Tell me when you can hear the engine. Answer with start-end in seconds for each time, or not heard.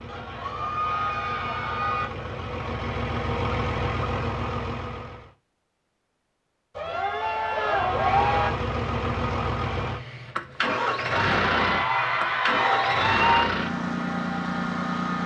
0.0-5.3, 7.7-15.2.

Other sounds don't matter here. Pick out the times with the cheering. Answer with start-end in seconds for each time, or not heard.
0.1-2.0, 6.8-8.5, 11.1-13.5.